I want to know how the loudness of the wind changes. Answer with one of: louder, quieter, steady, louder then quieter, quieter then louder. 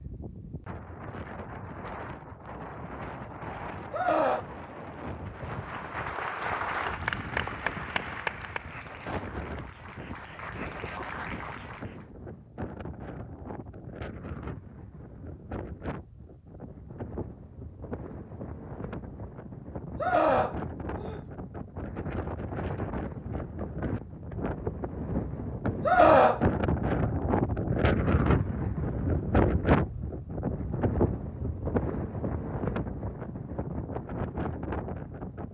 louder.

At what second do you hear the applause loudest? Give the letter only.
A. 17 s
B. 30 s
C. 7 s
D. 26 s
C.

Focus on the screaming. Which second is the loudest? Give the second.
26 s.